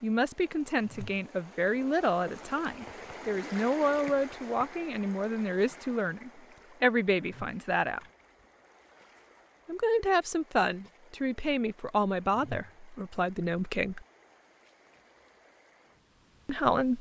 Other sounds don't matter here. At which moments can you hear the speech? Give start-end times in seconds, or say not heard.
0.0-8.0, 9.7-14.1, 16.4-16.9.